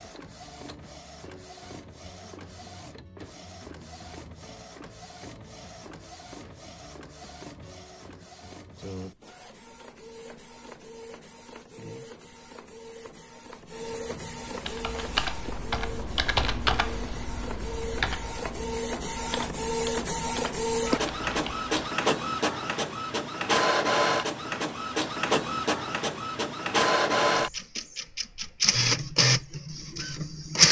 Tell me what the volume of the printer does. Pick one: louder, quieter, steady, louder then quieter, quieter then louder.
louder.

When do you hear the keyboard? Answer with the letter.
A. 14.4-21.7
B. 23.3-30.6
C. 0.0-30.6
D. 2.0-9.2
A.